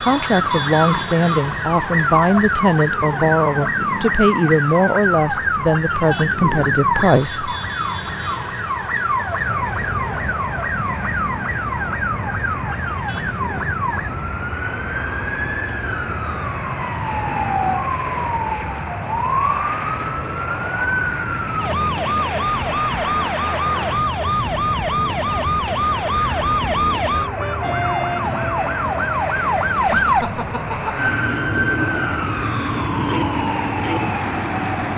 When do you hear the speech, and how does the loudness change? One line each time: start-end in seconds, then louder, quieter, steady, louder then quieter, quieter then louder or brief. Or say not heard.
0.0-7.5 steady.